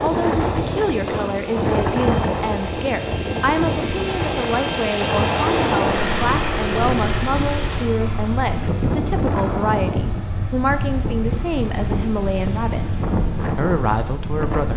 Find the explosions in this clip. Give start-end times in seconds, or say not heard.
1.1-1.5.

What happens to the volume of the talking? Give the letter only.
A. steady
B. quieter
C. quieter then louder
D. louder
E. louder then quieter
A.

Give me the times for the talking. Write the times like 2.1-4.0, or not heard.
0.0-14.7.